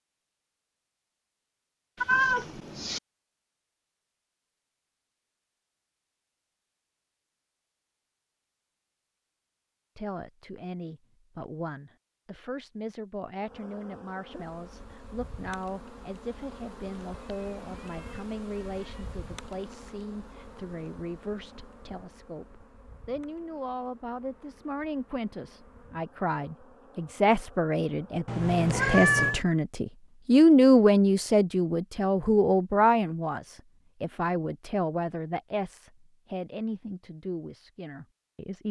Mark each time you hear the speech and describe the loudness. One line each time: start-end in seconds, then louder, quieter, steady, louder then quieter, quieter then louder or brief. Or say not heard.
9.9-38.6 louder then quieter.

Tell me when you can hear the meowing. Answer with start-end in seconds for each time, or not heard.
2.0-3.0, 17.2-19.1, 28.2-29.4.